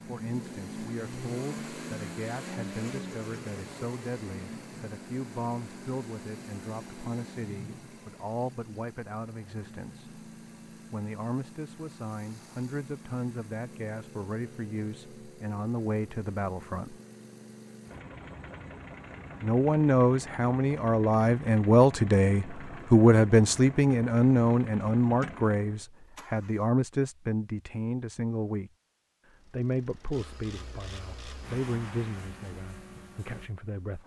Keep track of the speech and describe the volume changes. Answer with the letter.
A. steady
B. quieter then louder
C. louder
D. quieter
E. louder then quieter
E.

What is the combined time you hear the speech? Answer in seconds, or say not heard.
30 s.